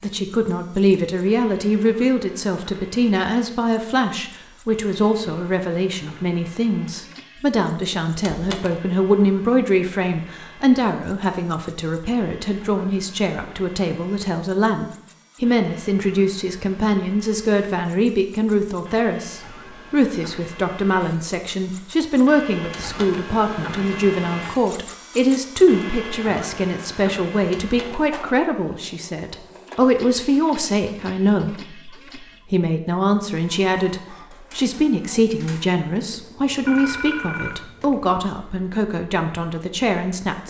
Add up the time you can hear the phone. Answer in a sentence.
The phone can be heard for 2 seconds in total.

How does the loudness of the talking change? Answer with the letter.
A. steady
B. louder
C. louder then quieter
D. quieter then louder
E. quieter
A.